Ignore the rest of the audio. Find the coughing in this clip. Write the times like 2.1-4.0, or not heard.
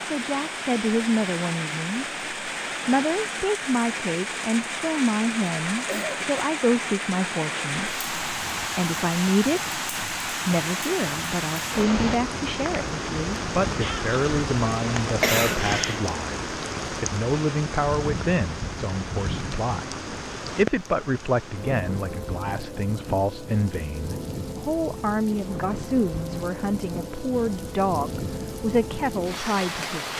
5.8-6.5, 15.2-16.1.